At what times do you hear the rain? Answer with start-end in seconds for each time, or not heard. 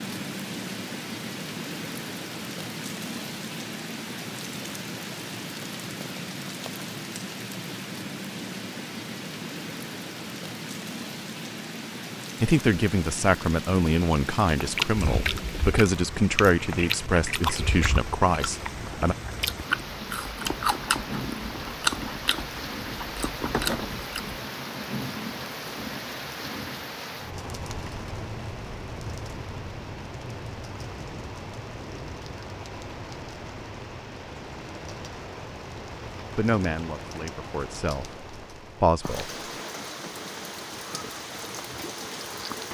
0.0-42.7.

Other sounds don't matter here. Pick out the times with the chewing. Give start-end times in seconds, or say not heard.
14.6-24.4.